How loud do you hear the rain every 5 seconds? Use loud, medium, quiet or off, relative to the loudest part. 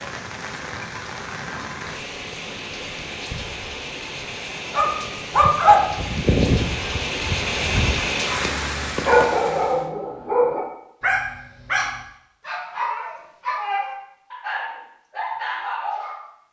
medium, loud, off, off.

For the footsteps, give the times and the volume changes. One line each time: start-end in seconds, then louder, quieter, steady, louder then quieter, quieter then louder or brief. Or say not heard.
not heard.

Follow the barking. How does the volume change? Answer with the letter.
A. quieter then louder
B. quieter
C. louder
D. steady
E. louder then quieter
B.